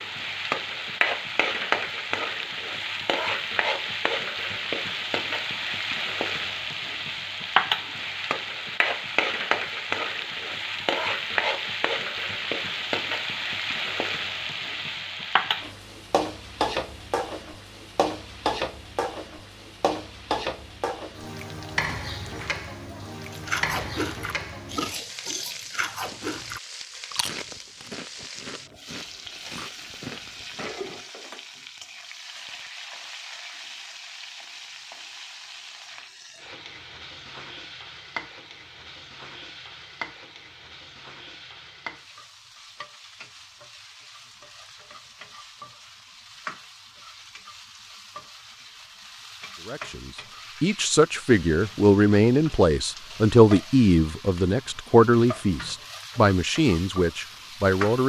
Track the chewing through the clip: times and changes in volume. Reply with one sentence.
You can hear the chewing from 23.3 to 30.9 s, getting quieter.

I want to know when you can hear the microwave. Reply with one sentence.
You can't hear the microwave here.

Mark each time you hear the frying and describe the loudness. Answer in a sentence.
You can hear the frying from 0.0 to 58.0 s, getting quieter.